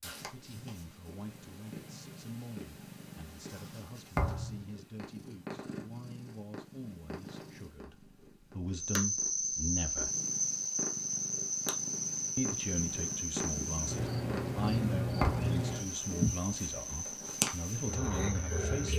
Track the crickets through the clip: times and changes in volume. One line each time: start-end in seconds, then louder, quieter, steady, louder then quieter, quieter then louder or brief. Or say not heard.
8.8-18.9 quieter.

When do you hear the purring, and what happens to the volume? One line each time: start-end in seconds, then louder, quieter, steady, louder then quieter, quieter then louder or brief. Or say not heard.
0.0-18.9 louder.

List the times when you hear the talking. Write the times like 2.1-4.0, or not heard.
0.0-10.1, 12.3-18.9.